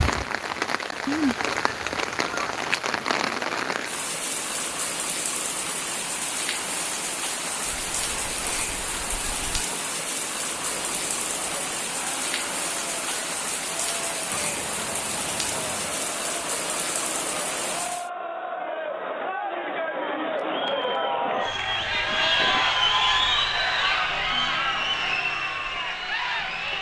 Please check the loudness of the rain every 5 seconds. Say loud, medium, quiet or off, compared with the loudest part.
loud, loud, loud, loud, off, off.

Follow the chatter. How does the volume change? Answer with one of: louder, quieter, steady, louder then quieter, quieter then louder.
louder.